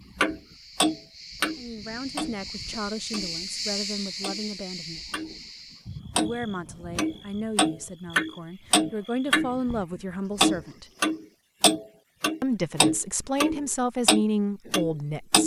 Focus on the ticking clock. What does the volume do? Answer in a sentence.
The loudness of the ticking clock goes down, then up.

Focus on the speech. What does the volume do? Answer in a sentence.
The loudness of the speech goes up.